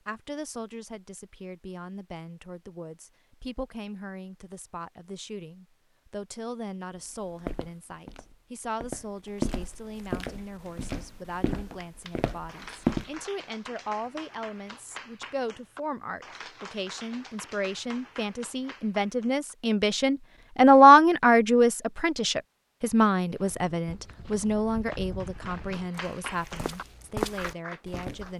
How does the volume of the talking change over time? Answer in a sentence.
The loudness of the talking goes up, then down.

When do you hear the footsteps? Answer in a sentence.
You can hear the footsteps from 7.4 to 13.1 s and from 23.3 to 28.3 s.